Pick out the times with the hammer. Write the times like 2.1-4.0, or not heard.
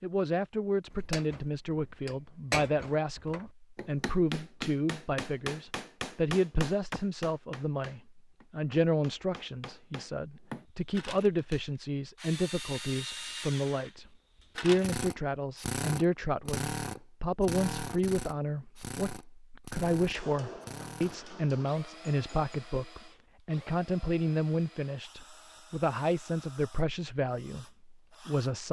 0.9-10.7, 20.1-22.6.